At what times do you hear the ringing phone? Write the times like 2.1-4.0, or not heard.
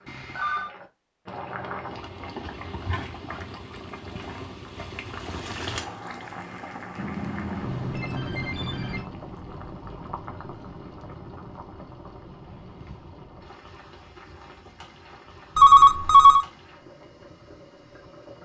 0.1-0.7, 7.0-9.1, 15.6-16.4.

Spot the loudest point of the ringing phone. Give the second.
16 s.